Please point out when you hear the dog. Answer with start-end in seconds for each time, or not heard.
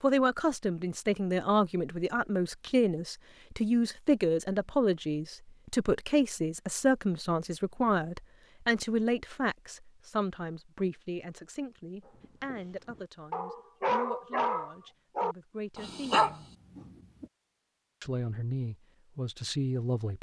12.0-17.2.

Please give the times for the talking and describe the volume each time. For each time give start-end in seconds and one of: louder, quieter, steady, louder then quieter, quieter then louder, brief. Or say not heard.
0.0-16.4 quieter
18.0-20.1 brief.